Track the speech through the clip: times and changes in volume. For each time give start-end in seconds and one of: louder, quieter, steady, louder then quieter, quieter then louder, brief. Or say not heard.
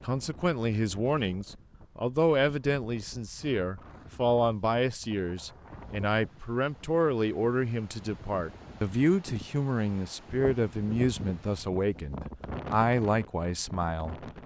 0.0-14.2 steady.